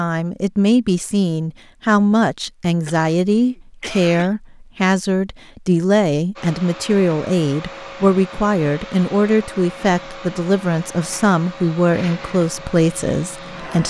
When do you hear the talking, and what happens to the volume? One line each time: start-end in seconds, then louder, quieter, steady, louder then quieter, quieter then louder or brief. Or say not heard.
0.0-13.8 steady.